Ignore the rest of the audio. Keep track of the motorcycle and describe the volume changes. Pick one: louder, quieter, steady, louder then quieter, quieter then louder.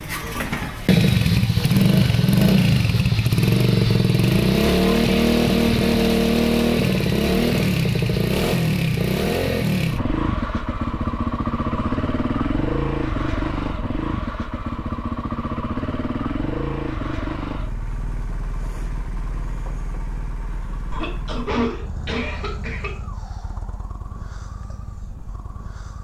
quieter.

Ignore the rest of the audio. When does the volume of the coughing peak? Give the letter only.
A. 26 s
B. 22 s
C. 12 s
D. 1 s
B.